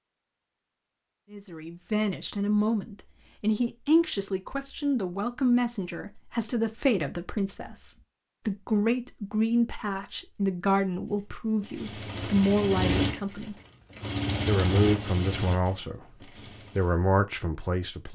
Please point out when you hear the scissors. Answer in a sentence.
The scissors can't be heard in this clip.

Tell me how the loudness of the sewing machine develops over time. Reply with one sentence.
The volume of the sewing machine goes down.